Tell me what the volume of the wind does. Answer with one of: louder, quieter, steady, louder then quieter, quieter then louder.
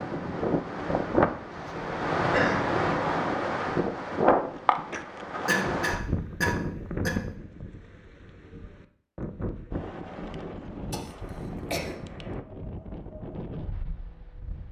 quieter.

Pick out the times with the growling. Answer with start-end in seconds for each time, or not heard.
not heard.